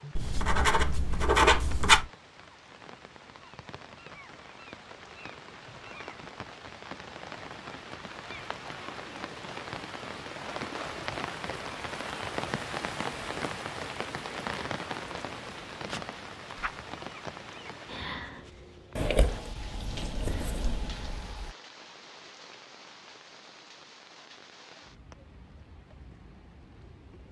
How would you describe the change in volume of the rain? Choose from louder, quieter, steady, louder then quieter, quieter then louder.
louder then quieter.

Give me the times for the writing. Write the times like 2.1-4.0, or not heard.
0.1-2.1, 18.9-21.5.